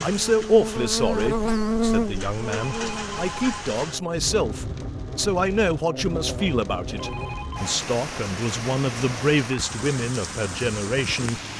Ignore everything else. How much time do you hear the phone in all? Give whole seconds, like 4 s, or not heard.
2 s.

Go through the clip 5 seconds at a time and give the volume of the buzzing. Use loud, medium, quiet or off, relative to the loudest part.
loud, medium, off.